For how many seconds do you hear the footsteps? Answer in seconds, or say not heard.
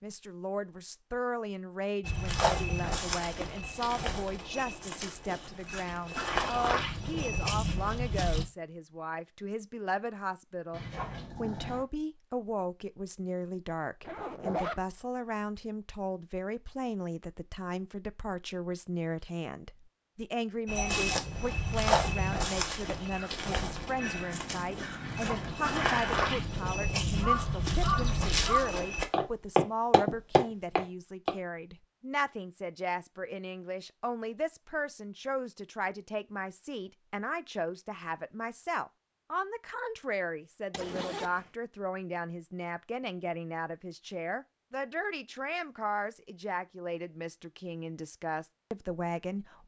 17 s.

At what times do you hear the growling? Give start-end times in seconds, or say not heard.
10.7-11.8, 25.0-26.6.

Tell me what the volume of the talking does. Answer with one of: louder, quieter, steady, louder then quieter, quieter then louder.
steady.